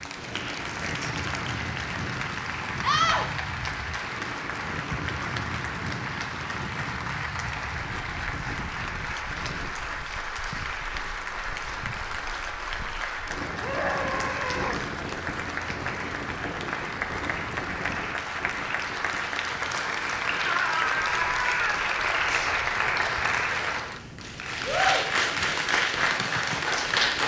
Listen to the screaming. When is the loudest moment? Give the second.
3 s.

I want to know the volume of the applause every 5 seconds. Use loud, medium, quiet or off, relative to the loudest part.
medium, medium, medium, medium, loud, loud.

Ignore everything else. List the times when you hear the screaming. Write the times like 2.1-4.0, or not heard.
2.8-3.3, 13.6-14.8, 20.4-21.8.